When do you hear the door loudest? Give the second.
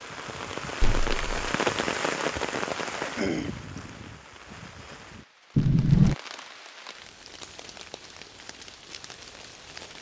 6 s.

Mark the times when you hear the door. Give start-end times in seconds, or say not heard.
0.8-1.5, 5.5-6.2.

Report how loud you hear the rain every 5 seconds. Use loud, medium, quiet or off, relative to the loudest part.
loud, quiet.